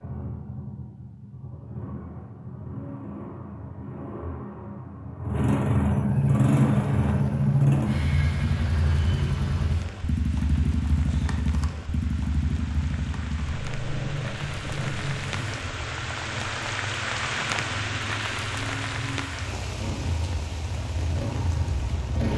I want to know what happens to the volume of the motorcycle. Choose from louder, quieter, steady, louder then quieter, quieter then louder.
louder then quieter.